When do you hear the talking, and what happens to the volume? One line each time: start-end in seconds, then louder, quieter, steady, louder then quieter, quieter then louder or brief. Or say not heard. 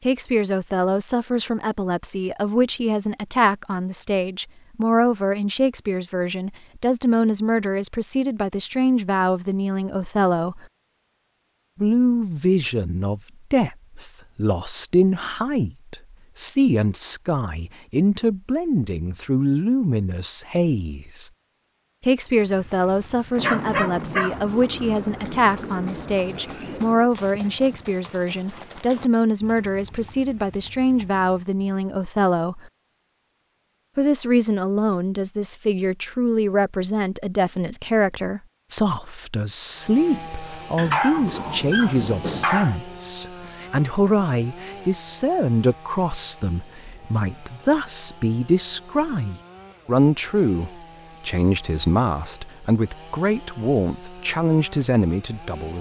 0.0-10.7 steady
11.8-21.3 steady
22.0-32.7 steady
34.0-55.7 steady.